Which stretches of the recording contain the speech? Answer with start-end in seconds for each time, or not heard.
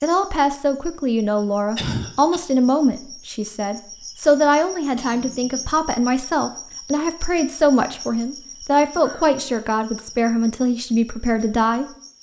0.0-11.8.